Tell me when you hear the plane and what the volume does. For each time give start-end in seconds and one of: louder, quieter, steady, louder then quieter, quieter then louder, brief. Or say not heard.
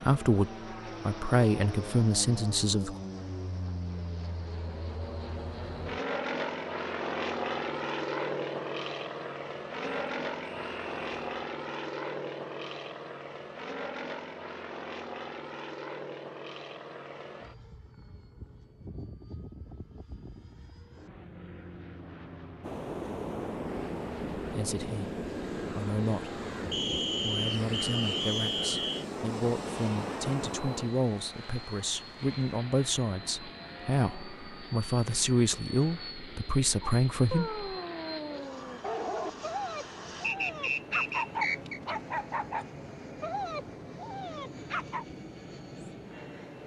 0.0-46.6 quieter.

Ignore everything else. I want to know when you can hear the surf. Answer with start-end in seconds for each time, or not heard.
22.6-46.6.